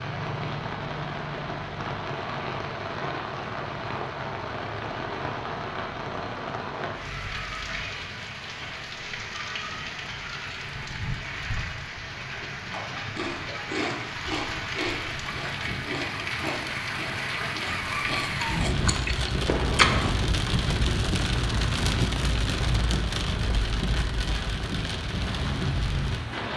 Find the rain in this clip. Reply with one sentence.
The rain can be heard from 0.0 to 26.5 s.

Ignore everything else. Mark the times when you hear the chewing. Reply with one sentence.
The chewing can be heard from 12.7 to 20.1 s.